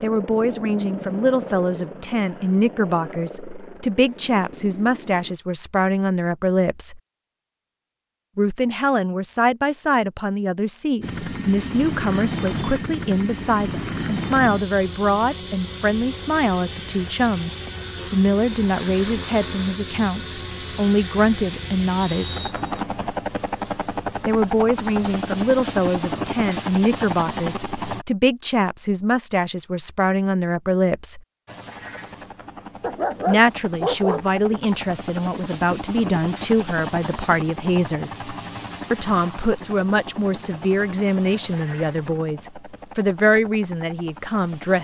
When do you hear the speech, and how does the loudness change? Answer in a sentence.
The speech can be heard from 0.0 to 7.0 s, at a steady volume; from 8.3 to 22.3 s, at a steady volume; from 24.2 to 31.2 s, at a steady volume; and from 33.2 to 44.7 s, at a steady volume.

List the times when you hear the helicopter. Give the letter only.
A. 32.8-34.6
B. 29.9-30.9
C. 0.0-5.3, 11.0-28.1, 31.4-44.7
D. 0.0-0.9
C.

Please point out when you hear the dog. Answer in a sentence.
The dog can be heard from 32.8 to 34.6 s.